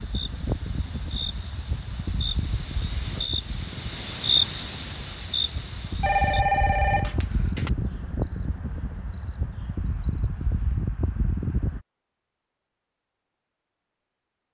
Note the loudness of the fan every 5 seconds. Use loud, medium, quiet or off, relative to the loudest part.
medium, loud, loud.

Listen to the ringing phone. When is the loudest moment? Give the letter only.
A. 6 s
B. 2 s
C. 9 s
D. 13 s
A.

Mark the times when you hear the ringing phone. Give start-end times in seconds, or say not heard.
6.0-7.7.